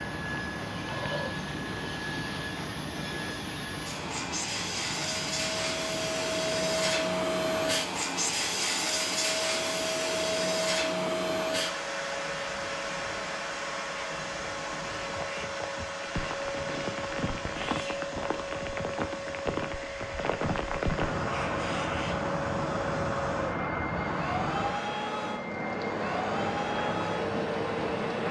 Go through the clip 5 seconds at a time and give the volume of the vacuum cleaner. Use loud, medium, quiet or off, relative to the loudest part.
medium, loud, loud, medium, medium, medium.